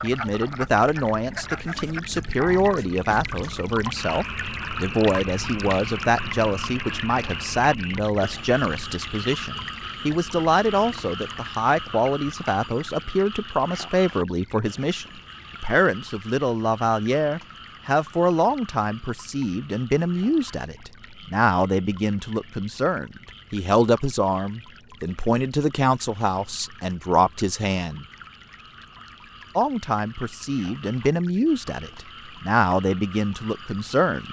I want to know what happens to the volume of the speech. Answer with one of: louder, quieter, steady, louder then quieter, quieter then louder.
steady.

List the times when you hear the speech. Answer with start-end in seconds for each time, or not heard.
0.0-28.1, 29.6-34.2.